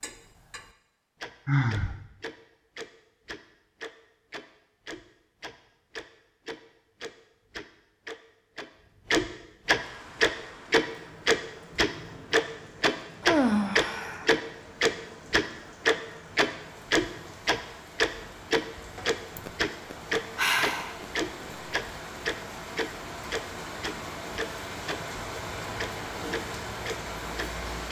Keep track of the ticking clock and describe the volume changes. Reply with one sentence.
The loudness of the ticking clock goes up, then down.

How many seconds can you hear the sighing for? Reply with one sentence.
The sighing can be heard for 4 seconds in total.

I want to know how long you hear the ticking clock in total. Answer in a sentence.
The ticking clock can be heard for 28 seconds in total.